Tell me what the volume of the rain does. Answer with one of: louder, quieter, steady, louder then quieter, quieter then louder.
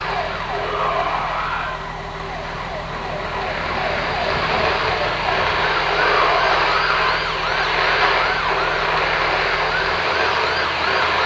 louder.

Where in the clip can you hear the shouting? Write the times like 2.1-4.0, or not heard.
0.5-1.8, 5.9-7.0.